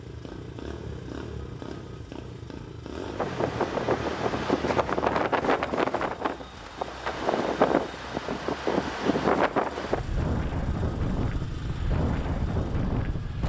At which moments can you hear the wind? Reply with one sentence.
The wind can be heard from 3.1 to 13.4 s.